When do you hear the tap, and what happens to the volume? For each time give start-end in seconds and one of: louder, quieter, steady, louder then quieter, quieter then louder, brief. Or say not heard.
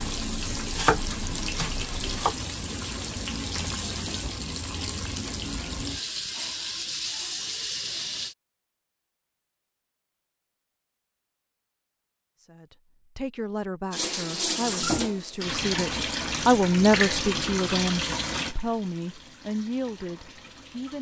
0.0-8.3 steady
13.9-20.9 quieter.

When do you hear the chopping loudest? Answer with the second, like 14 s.
1 s.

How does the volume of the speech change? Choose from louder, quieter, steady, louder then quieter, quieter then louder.
louder then quieter.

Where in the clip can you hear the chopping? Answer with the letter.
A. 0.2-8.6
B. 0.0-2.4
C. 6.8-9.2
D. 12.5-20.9
B.